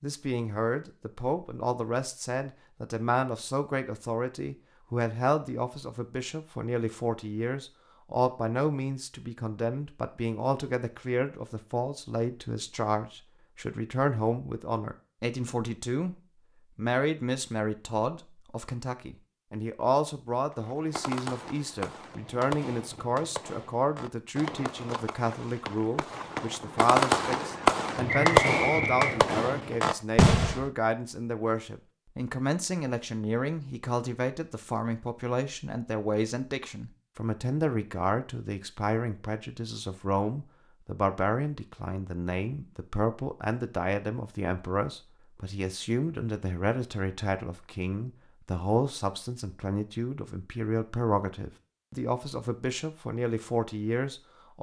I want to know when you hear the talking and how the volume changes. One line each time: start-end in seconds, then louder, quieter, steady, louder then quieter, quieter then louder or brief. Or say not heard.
0.0-16.1 steady
16.8-54.5 steady.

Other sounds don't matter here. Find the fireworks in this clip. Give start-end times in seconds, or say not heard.
20.5-30.7.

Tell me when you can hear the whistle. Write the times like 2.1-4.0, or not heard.
28.1-29.4.